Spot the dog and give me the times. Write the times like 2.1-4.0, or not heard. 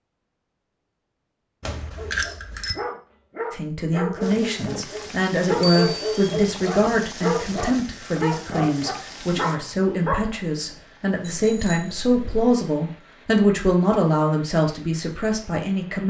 1.9-10.3.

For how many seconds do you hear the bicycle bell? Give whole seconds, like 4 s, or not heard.
3 s.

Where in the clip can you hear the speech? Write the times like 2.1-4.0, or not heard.
3.5-16.0.